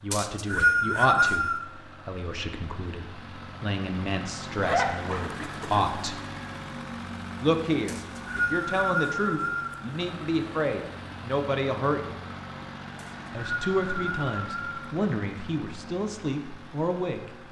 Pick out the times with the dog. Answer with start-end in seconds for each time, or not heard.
4.6-5.9.